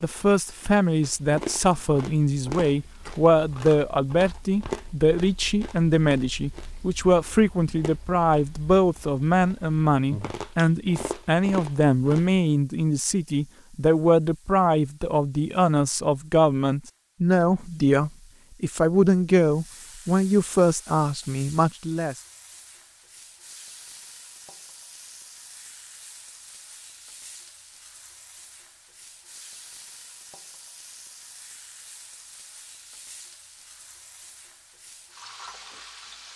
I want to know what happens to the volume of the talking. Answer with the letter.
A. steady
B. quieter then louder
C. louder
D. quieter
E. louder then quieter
A.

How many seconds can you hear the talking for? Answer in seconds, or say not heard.
22 s.